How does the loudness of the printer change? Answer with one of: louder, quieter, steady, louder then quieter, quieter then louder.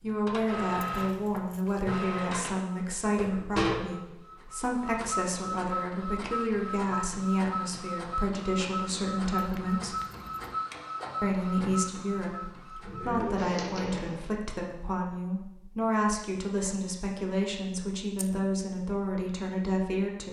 steady.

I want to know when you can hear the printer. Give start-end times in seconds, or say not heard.
0.0-14.2.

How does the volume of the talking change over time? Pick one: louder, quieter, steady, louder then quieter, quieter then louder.
steady.